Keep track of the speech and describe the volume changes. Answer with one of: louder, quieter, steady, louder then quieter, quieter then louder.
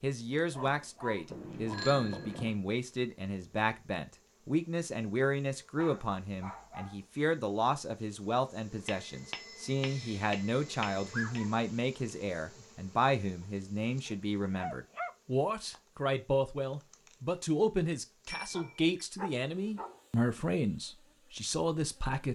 steady.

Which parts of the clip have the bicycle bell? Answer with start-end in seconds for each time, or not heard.
1.3-2.5, 8.8-11.3, 18.2-19.1.